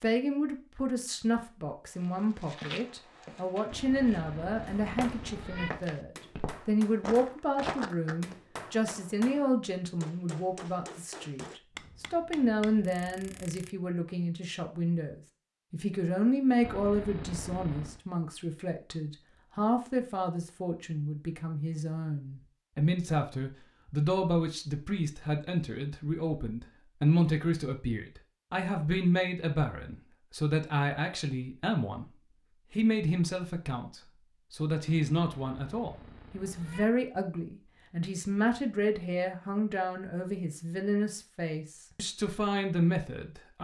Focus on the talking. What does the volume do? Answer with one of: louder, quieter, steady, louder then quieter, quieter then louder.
steady.